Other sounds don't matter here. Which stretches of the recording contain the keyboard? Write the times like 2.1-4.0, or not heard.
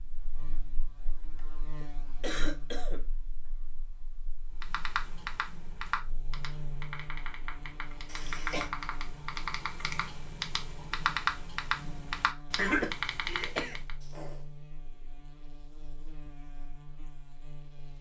4.6-13.9.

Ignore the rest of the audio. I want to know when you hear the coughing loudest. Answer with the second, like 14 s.
13 s.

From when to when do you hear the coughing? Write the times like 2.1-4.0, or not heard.
1.4-3.0, 8.1-8.7, 12.6-14.3.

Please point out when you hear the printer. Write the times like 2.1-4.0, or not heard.
not heard.